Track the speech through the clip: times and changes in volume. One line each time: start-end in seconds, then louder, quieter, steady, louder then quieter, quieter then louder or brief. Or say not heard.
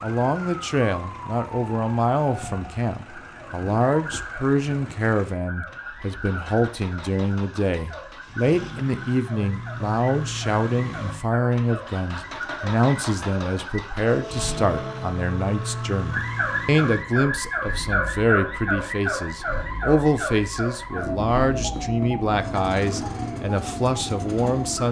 0.0-24.8 steady.